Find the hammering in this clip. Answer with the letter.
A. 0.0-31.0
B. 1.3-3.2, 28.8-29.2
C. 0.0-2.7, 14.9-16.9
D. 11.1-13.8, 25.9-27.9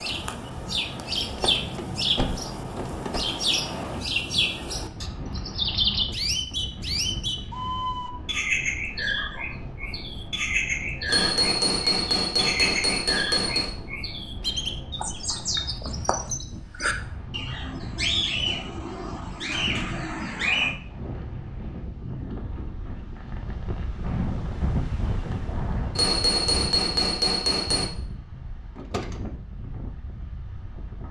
D.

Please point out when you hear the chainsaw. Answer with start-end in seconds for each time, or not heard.
not heard.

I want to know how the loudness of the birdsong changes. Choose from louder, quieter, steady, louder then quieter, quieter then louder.
steady.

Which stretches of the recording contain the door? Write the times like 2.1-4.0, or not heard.
1.3-3.2, 28.8-29.2.